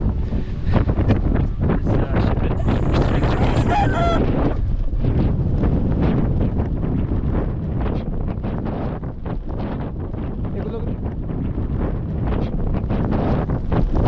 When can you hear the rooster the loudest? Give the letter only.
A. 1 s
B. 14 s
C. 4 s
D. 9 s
C.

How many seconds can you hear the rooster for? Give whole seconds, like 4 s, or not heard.
2 s.